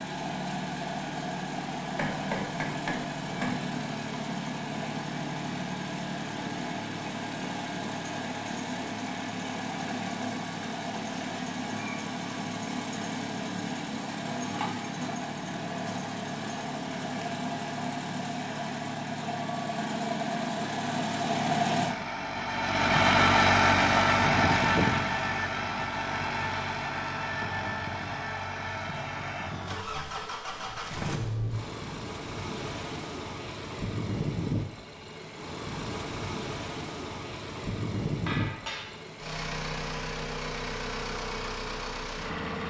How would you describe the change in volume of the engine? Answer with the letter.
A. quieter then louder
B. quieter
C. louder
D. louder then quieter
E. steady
D.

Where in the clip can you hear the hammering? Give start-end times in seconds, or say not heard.
1.9-3.6, 38.2-39.0.